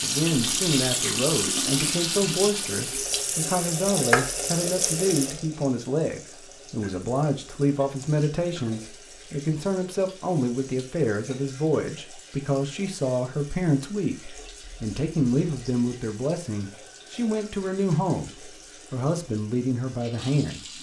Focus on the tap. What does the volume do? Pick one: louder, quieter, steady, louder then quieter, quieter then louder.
quieter.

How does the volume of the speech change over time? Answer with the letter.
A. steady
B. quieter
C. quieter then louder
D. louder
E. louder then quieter
A.